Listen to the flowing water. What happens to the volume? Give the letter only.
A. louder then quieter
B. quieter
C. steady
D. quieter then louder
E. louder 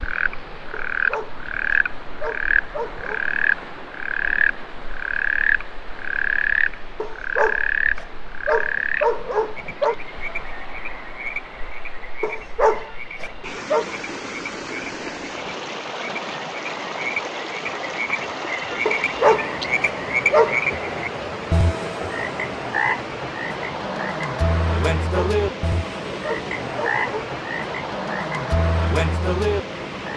E.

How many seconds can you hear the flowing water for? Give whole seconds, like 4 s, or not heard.
30 s.